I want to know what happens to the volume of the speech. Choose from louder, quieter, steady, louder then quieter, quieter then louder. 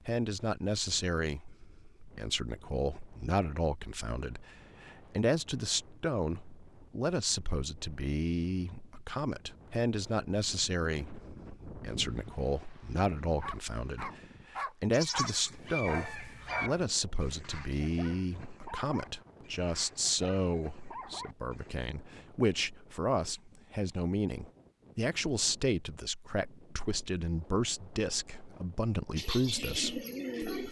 steady.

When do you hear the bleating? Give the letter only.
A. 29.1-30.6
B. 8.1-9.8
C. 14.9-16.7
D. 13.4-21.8
C.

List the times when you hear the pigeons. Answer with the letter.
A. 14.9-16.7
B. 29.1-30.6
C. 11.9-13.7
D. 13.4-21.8
B.